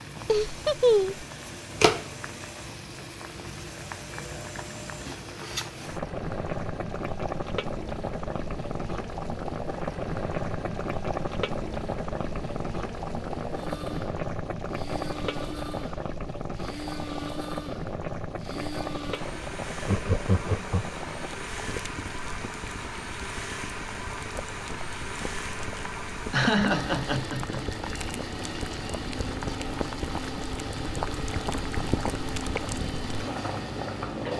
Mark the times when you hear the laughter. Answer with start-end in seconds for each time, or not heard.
0.2-1.2, 19.8-20.9, 26.3-27.6.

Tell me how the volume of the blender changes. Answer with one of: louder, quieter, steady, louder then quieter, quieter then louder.
louder.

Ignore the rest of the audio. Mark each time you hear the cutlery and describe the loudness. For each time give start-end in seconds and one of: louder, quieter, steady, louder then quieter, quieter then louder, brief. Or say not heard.
not heard.